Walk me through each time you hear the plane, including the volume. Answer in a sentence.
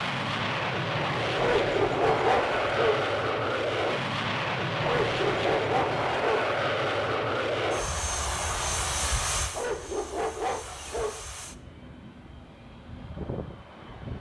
The plane can be heard from 0.0 to 14.1 s, getting quieter.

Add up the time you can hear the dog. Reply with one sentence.
You can hear the dog for 5 seconds altogether.